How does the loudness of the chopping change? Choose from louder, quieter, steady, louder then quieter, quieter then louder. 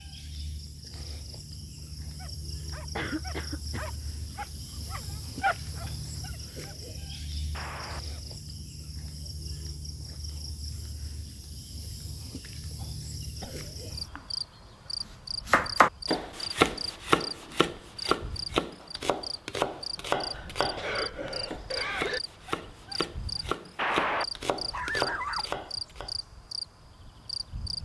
quieter.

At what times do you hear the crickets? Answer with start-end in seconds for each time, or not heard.
0.0-27.8.